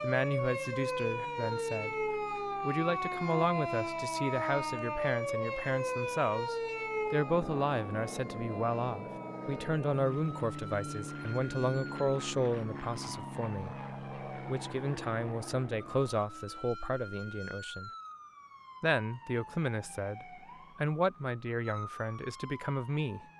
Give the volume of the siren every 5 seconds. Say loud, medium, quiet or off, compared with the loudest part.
loud, loud, quiet, quiet, quiet.